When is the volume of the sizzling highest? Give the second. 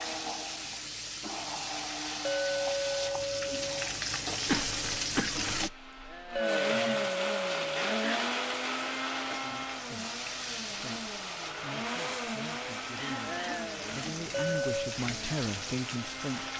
5 s.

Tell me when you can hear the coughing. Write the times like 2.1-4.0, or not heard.
4.5-6.4, 12.9-13.7.